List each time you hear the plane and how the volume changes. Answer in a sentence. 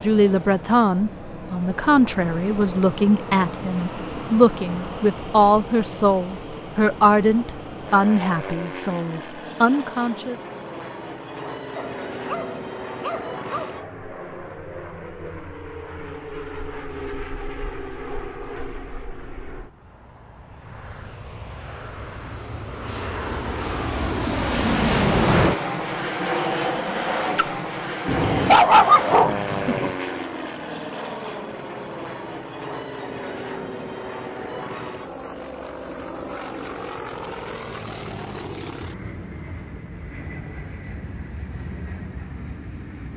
You can hear the plane from 0.0 to 43.1 s, getting louder then quieter.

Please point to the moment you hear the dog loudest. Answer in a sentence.
The volume of the dog peaks at 29 seconds.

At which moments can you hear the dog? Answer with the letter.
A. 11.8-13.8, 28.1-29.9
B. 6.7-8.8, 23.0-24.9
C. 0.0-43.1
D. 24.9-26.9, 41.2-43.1
A.